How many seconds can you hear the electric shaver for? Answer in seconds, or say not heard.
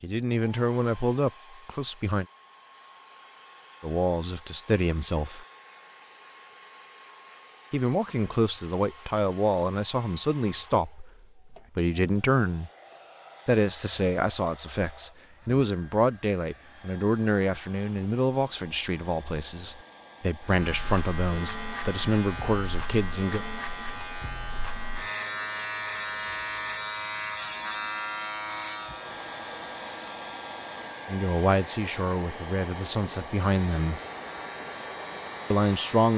13 s.